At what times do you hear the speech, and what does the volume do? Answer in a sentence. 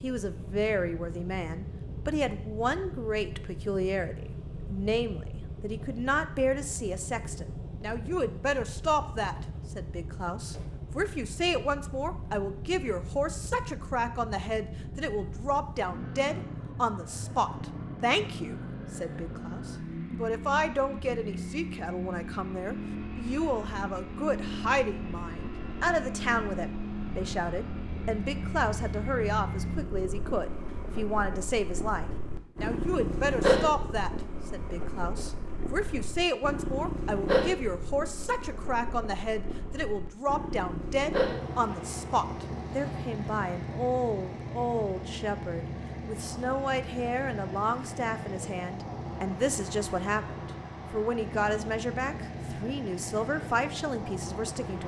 You can hear the speech from 0.0 to 54.8 s, at a steady volume.